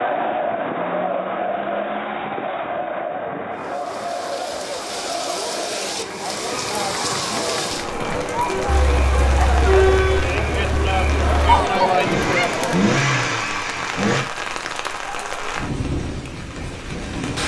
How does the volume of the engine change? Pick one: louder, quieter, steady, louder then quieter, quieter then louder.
louder.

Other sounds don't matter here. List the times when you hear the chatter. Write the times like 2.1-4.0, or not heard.
0.0-12.8.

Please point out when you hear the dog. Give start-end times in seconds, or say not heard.
not heard.